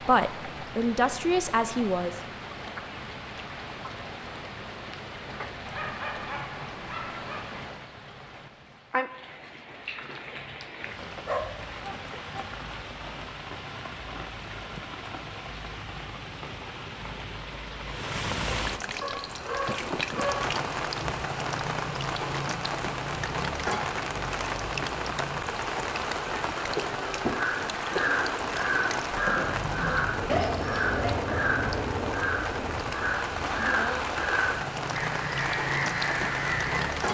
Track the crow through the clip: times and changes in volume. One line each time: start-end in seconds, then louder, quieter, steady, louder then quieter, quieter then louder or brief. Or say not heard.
27.2-37.0 steady.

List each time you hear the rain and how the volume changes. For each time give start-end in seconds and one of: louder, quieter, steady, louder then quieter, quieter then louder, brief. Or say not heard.
0.0-37.1 louder.